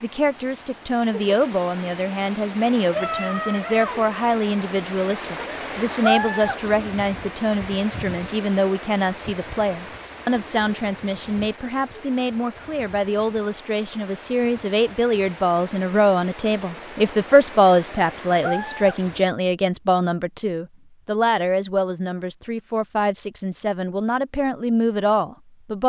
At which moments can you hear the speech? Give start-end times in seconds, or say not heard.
0.0-25.8.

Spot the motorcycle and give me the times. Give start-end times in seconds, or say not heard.
not heard.